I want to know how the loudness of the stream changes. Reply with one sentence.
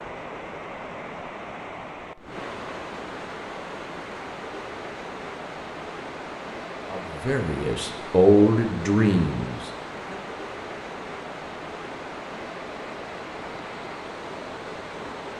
The loudness of the stream stays about the same.